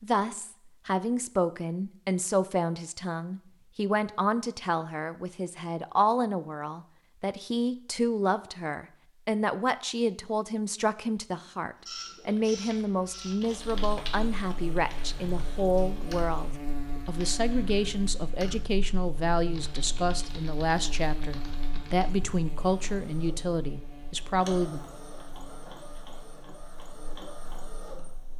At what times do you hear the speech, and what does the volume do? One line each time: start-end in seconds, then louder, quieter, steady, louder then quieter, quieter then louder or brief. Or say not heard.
0.0-24.8 steady.